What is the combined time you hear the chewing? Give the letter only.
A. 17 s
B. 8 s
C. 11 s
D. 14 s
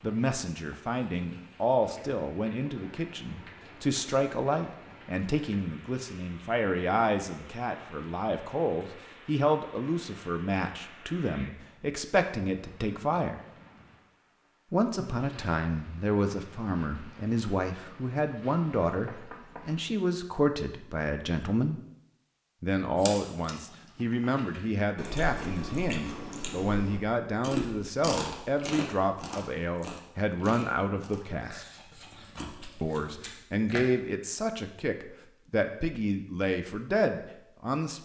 C.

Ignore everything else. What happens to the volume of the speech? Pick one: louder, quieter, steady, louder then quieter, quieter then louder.
steady.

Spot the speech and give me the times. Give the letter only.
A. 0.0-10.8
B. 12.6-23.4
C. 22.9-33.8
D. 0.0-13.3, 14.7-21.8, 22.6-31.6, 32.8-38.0
D.